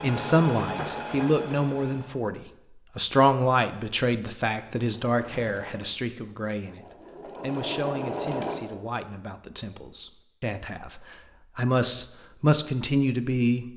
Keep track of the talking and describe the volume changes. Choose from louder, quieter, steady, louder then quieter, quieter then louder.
quieter then louder.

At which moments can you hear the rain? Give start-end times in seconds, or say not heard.
not heard.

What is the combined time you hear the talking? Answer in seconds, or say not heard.
14 s.